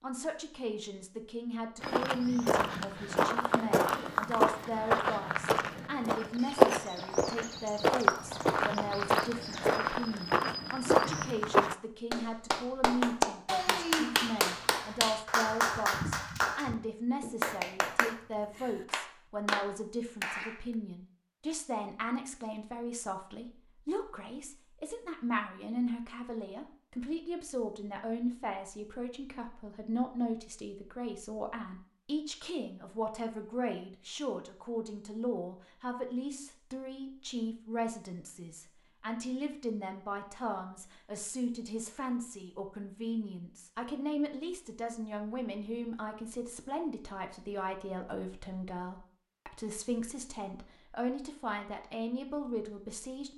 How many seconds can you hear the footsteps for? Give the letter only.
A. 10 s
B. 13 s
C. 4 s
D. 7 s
A.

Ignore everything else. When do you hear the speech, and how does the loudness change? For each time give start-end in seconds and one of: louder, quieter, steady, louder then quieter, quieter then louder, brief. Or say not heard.
0.0-53.3 steady.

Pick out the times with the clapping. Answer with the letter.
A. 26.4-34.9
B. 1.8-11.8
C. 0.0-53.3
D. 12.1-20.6
D.